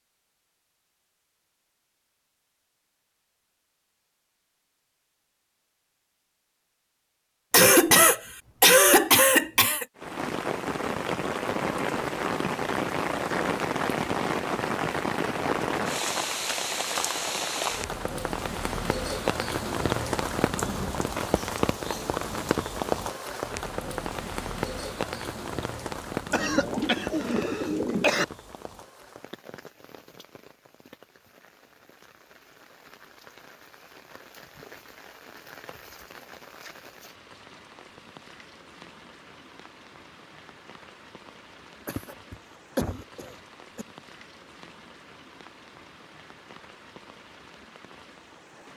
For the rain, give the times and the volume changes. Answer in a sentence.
The rain can be heard from 9.9 to 48.7 s, getting quieter.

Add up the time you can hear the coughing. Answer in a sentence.
You can hear the coughing for 6 seconds altogether.